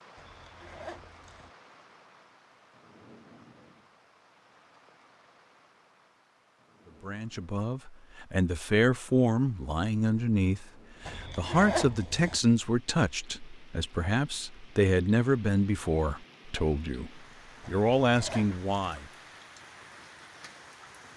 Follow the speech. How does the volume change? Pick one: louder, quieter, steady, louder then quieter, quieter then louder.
steady.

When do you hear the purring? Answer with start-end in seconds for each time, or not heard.
not heard.